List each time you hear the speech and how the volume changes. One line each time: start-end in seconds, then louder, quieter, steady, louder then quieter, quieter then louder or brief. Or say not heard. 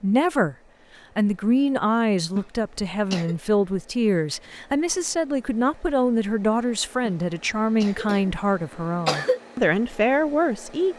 0.0-0.6 brief
1.1-10.9 steady.